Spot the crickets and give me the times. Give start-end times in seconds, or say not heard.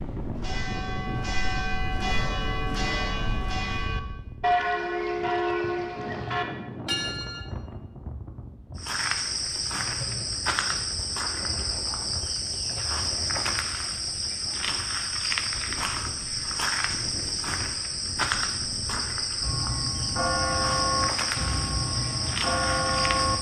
8.8-23.3.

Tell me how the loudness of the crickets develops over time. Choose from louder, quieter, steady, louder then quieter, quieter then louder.
steady.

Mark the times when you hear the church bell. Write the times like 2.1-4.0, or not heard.
0.0-7.5, 19.4-23.3.